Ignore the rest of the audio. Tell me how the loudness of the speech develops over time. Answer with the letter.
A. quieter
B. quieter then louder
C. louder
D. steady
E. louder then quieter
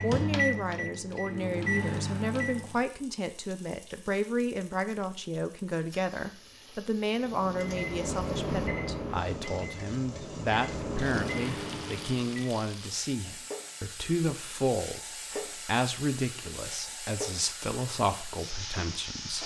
D.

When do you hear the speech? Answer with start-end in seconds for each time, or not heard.
0.0-19.4.